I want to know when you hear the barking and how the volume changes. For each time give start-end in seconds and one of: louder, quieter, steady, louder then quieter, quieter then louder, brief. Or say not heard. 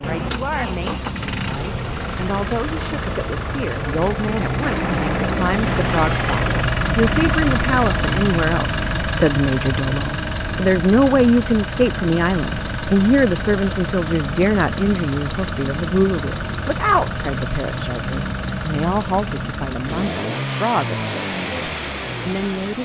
not heard.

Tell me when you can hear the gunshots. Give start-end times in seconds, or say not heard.
4.6-6.7.